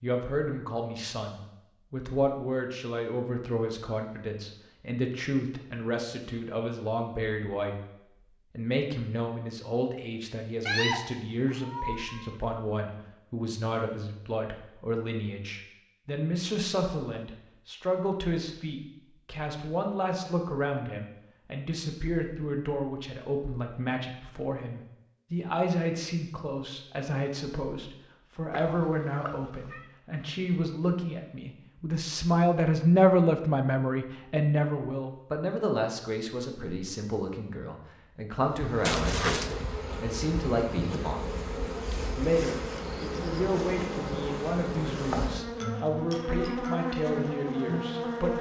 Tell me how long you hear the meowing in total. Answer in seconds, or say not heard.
4 s.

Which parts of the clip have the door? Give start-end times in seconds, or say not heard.
not heard.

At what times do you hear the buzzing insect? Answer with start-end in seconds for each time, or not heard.
38.4-48.3.